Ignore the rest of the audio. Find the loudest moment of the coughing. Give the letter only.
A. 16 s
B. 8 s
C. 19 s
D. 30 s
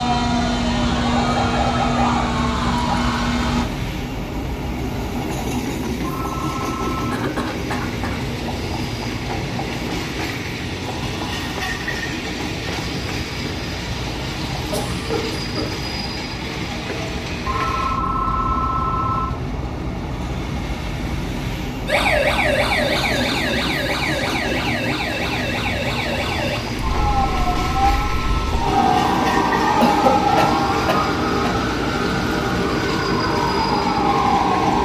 D.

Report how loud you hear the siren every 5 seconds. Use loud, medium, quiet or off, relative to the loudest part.
loud, off, off, off, loud, loud, loud.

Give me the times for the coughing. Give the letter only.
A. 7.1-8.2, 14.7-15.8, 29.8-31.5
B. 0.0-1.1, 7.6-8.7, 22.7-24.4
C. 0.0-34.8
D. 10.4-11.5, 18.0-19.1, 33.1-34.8
A.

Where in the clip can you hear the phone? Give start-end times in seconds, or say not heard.
6.0-7.2, 17.4-19.2, 26.9-28.6.